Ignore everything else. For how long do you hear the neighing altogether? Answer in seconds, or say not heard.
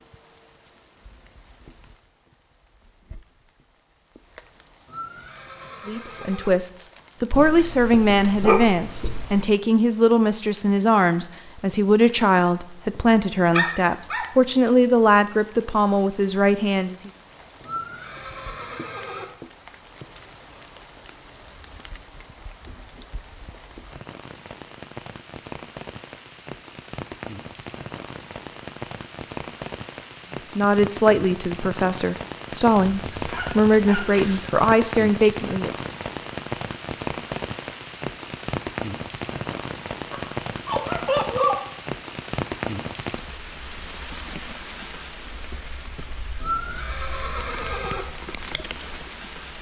5 s.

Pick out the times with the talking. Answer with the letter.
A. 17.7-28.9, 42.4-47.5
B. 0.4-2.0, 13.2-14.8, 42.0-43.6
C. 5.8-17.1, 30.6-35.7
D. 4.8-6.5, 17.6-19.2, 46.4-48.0
C.